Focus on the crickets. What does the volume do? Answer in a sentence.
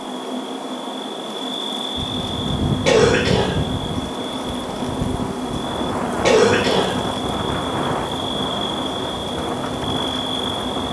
The loudness of the crickets stays about the same.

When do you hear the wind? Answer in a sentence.
The wind can be heard from 1.9 to 10.8 s.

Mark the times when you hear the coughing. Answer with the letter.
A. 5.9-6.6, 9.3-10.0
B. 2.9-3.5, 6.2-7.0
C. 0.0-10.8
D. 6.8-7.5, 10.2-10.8
B.